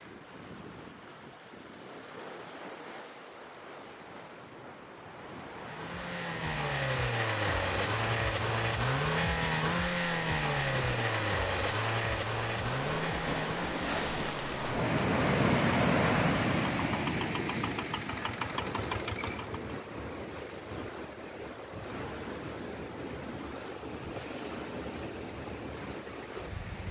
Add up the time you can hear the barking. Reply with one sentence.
You can't hear the barking here.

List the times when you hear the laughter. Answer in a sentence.
The laughter can't be heard in this clip.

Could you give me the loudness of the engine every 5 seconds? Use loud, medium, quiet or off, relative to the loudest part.
off, loud, loud, medium, off, off.